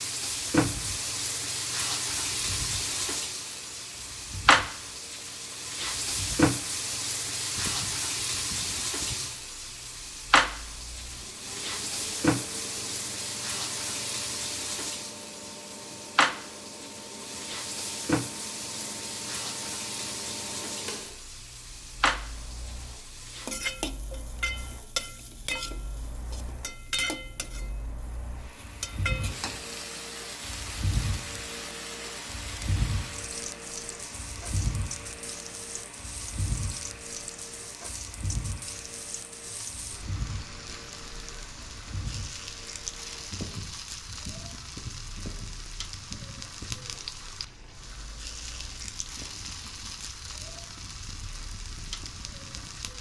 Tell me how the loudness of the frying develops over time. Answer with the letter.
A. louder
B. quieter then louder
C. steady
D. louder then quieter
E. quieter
E.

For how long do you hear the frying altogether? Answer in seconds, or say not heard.
53 s.